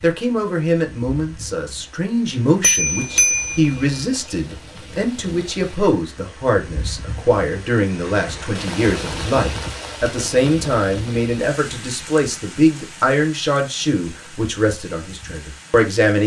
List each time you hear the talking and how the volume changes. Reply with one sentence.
You can hear the talking from 0.0 to 16.2 s, at a steady volume.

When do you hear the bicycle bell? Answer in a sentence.
You can hear the bicycle bell from 2.6 to 3.8 s.